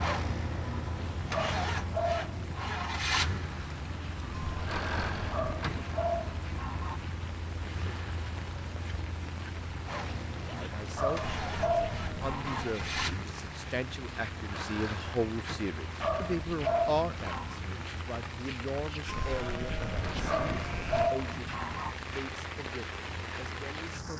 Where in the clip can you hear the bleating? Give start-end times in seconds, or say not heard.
4.3-6.0, 11.3-13.2, 19.1-21.1.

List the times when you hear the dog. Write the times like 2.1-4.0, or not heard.
1.3-3.0, 5.3-7.0, 10.9-12.7, 16.0-17.6, 20.2-21.9.